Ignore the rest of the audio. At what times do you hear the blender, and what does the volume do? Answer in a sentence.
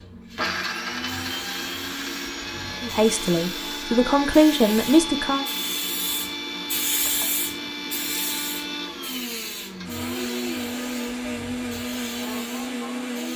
The blender can be heard from 0.2 to 13.3 s, at a steady volume.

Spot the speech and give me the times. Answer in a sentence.
You can hear the speech from 2.8 to 5.5 s.